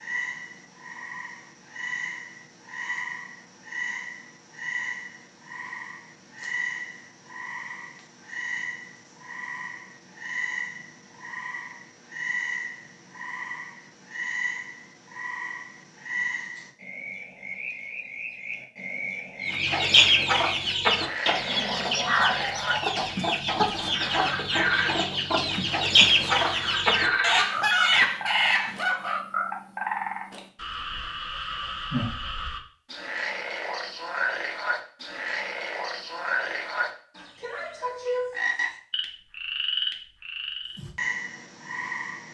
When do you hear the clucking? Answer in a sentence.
The clucking can be heard from 19.4 to 29.2 s.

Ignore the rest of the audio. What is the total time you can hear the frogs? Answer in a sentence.
The frogs can be heard for 42 seconds in total.